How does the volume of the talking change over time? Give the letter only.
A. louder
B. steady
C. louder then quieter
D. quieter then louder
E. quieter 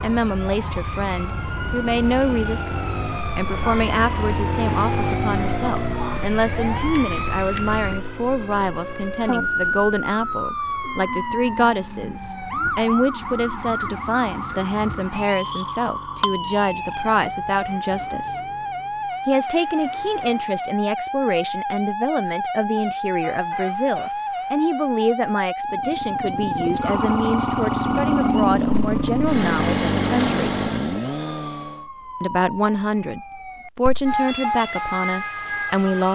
B.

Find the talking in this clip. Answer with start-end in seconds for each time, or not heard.
0.0-18.4, 19.2-30.6, 32.2-36.0.